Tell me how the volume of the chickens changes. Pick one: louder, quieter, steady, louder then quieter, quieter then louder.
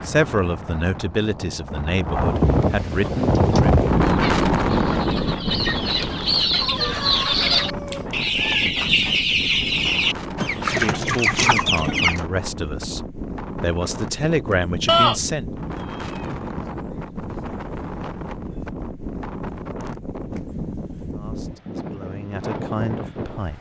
louder.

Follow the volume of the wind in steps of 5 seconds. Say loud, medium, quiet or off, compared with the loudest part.
loud, medium, medium, medium, medium.